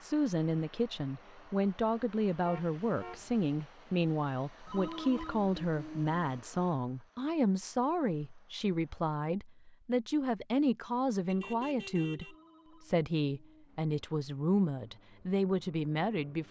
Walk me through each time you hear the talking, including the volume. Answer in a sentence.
You can hear the talking from 0.0 to 16.4 s, at a steady volume.